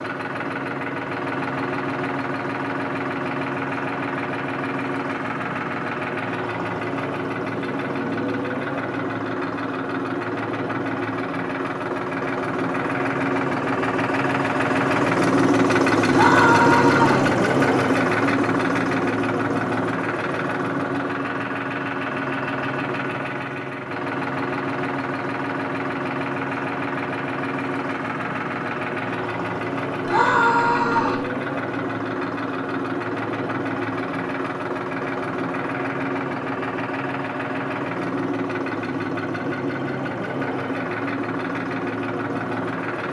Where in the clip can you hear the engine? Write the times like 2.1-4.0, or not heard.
0.0-43.0.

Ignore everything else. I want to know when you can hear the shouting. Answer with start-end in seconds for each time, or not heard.
16.1-17.3, 30.1-31.2.